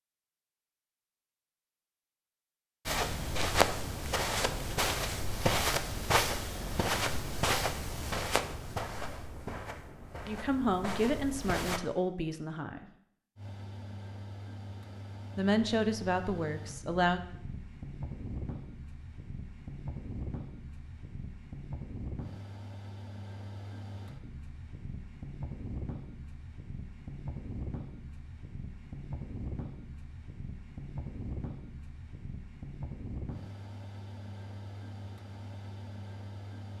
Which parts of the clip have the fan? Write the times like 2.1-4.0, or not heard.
13.3-36.7.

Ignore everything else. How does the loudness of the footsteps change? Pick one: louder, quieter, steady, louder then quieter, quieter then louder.
quieter.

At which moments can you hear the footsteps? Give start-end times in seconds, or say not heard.
2.9-11.8.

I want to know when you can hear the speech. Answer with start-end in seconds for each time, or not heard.
10.2-12.9, 15.3-17.2.